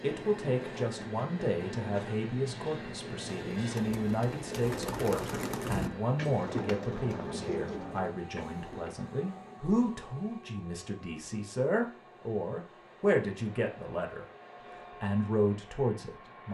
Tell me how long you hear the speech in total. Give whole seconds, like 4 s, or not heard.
16 s.